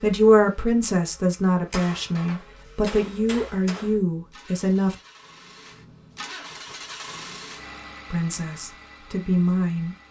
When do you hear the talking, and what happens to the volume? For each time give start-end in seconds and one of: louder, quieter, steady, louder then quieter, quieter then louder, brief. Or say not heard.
0.0-5.0 steady
8.1-9.9 brief.